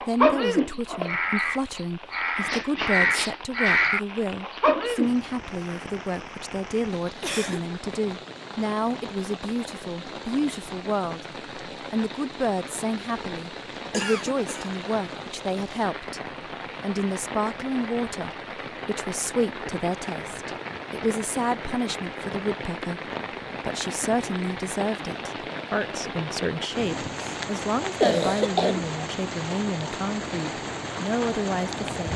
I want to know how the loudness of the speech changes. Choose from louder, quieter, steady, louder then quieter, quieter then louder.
steady.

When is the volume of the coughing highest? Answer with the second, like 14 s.
28 s.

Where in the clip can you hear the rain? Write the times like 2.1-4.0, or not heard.
0.0-32.1.